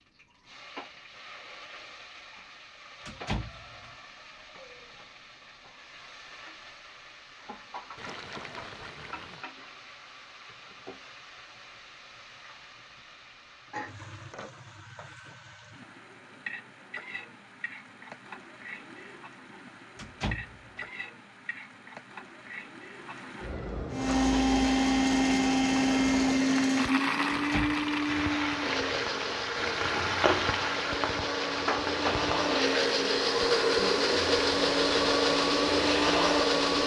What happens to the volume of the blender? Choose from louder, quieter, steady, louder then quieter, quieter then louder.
quieter then louder.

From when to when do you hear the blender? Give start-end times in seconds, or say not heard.
23.9-36.8.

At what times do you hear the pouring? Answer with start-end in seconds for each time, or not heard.
8.0-9.4.